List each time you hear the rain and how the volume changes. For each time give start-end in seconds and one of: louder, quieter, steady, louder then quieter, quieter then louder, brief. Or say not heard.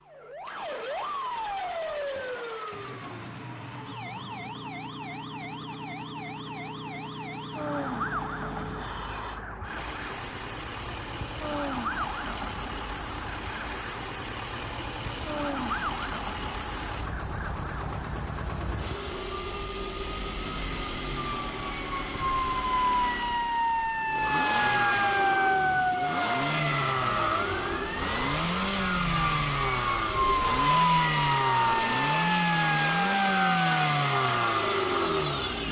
not heard.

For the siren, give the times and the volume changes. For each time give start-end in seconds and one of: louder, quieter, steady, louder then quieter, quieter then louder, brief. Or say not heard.
0.1-35.6 louder.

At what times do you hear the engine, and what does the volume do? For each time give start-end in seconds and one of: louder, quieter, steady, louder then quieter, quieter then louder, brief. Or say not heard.
0.0-35.6 louder.